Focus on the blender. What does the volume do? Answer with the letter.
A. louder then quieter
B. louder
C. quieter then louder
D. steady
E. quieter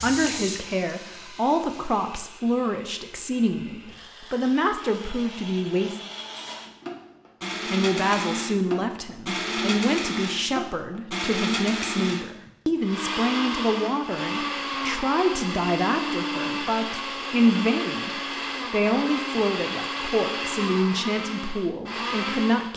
B.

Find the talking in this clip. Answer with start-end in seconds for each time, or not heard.
0.0-6.0, 7.7-22.7.